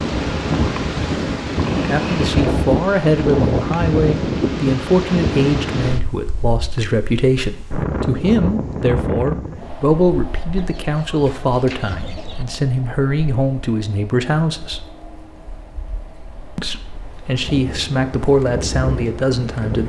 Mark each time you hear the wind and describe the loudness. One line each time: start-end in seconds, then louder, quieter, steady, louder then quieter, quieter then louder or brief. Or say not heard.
0.0-19.8 quieter then louder.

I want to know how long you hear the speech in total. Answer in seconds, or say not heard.
16 s.